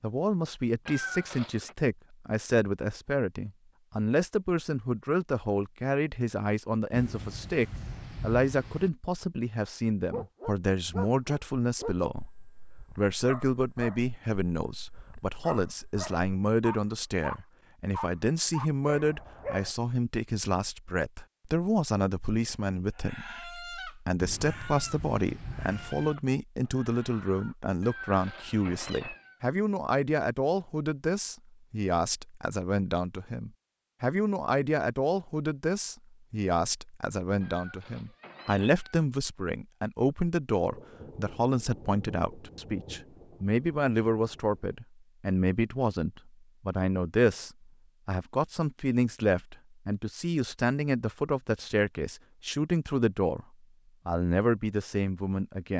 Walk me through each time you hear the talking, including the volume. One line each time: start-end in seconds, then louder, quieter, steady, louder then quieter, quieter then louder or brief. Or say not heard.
0.0-53.5 steady
54.0-55.7 brief.